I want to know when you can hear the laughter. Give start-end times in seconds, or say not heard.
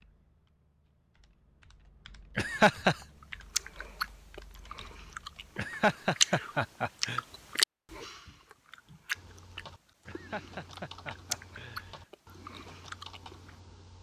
2.4-3.0, 5.5-7.2, 10.1-12.1.